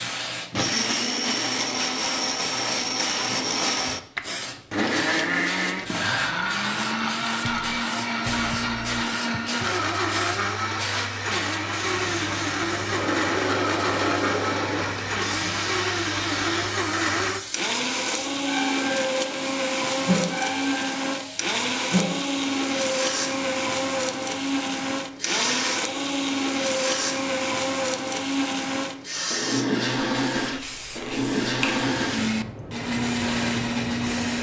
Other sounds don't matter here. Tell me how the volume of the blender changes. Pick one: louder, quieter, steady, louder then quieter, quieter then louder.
steady.